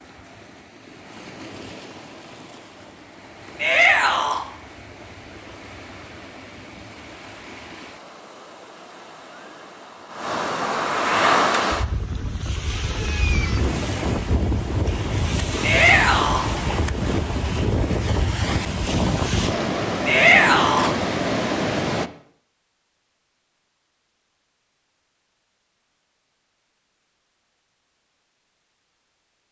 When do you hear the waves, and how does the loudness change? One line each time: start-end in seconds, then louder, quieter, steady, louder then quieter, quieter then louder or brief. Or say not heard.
0.0-22.1 louder.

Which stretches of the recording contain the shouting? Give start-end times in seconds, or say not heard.
3.6-4.5, 15.6-16.4, 20.1-20.9.